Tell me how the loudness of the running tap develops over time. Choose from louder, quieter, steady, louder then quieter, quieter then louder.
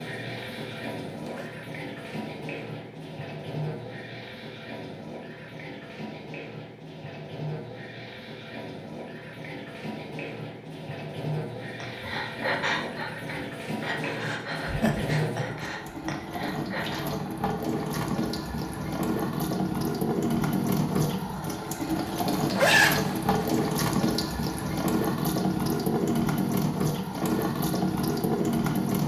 louder.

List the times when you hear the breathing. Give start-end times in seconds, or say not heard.
11.8-17.1.